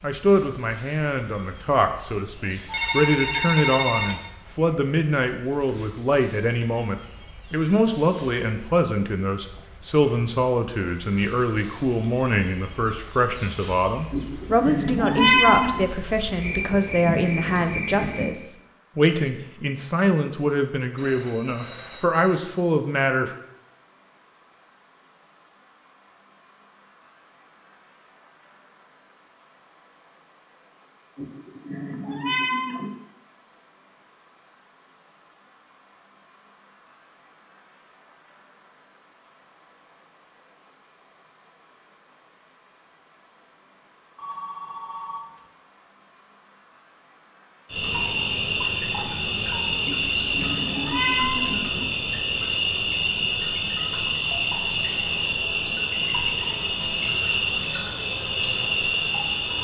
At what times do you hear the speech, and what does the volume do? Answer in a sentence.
You can hear the speech from 0.0 to 23.3 s, at a steady volume.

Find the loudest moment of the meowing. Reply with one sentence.
The volume of the meowing peaks at 15 seconds.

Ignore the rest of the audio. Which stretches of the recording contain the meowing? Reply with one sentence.
The meowing can be heard from 14.1 to 15.8 s, from 31.1 to 32.9 s and from 49.9 to 51.9 s.